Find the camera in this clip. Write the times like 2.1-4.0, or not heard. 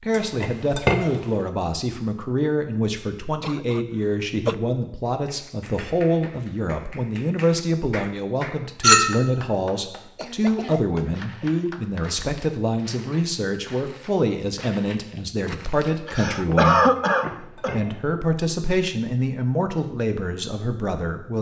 not heard.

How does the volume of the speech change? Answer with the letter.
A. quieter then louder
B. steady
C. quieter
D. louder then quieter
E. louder
B.